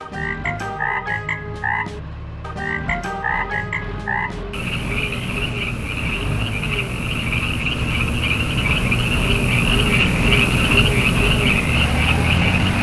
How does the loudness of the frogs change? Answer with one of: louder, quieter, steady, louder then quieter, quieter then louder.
louder.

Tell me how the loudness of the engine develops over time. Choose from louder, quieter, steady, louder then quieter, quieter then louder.
louder.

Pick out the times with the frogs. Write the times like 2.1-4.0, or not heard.
0.0-12.7.